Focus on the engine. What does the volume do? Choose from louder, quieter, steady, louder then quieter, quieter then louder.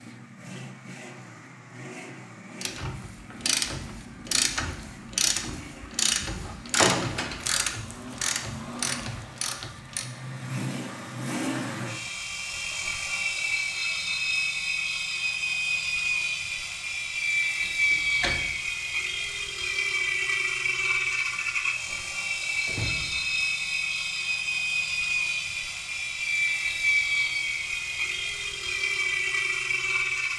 louder.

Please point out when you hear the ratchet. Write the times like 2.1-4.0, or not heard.
2.6-10.1.